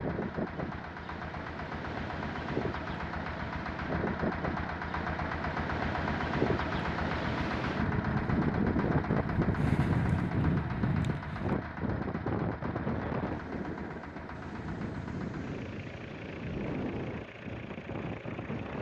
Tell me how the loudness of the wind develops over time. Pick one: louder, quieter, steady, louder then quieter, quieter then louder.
louder then quieter.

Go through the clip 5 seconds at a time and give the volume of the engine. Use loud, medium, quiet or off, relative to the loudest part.
loud, loud, medium, medium.